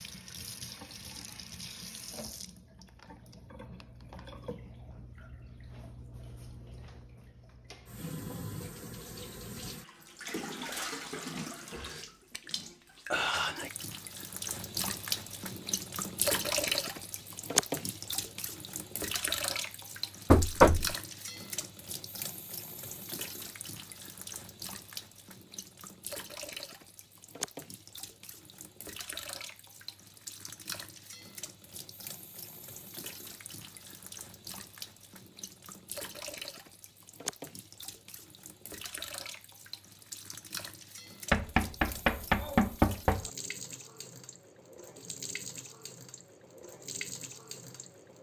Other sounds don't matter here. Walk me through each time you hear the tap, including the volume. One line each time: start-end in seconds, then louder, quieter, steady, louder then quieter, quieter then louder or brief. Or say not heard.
0.0-48.1 louder then quieter.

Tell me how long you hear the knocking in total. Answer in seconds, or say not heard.
3 s.